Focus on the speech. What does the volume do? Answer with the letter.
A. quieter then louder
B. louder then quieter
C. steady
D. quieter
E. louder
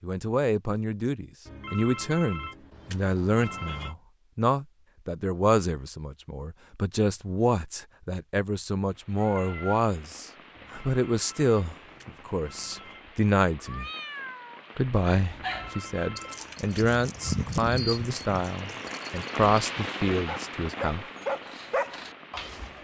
C.